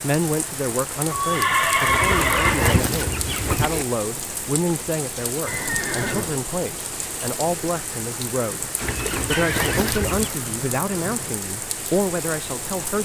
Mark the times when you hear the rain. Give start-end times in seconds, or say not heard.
0.0-13.0.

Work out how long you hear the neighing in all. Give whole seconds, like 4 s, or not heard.
5 s.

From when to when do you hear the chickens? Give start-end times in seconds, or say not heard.
1.9-3.9, 8.8-10.3.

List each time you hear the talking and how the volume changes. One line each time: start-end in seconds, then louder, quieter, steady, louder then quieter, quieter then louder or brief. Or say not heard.
0.0-13.0 steady.